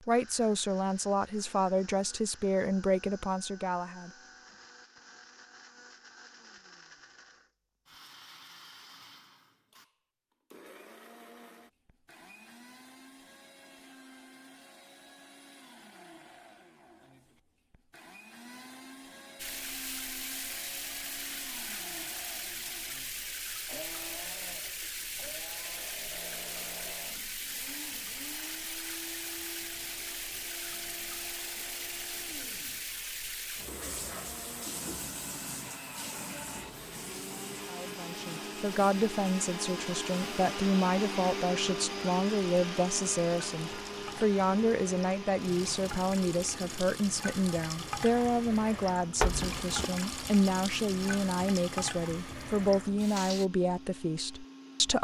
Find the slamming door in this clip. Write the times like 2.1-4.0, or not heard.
49.2-49.9.